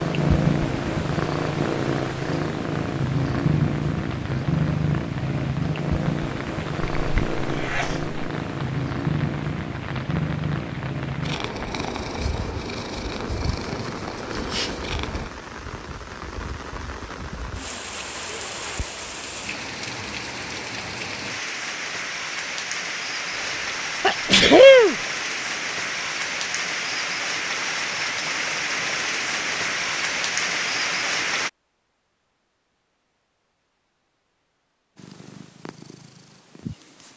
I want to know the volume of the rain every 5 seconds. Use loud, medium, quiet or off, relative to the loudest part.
quiet, quiet, quiet, medium, medium, loud, loud, off.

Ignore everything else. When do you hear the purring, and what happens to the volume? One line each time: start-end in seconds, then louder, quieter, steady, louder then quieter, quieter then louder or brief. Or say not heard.
0.0-15.3 quieter
35.0-37.1 brief.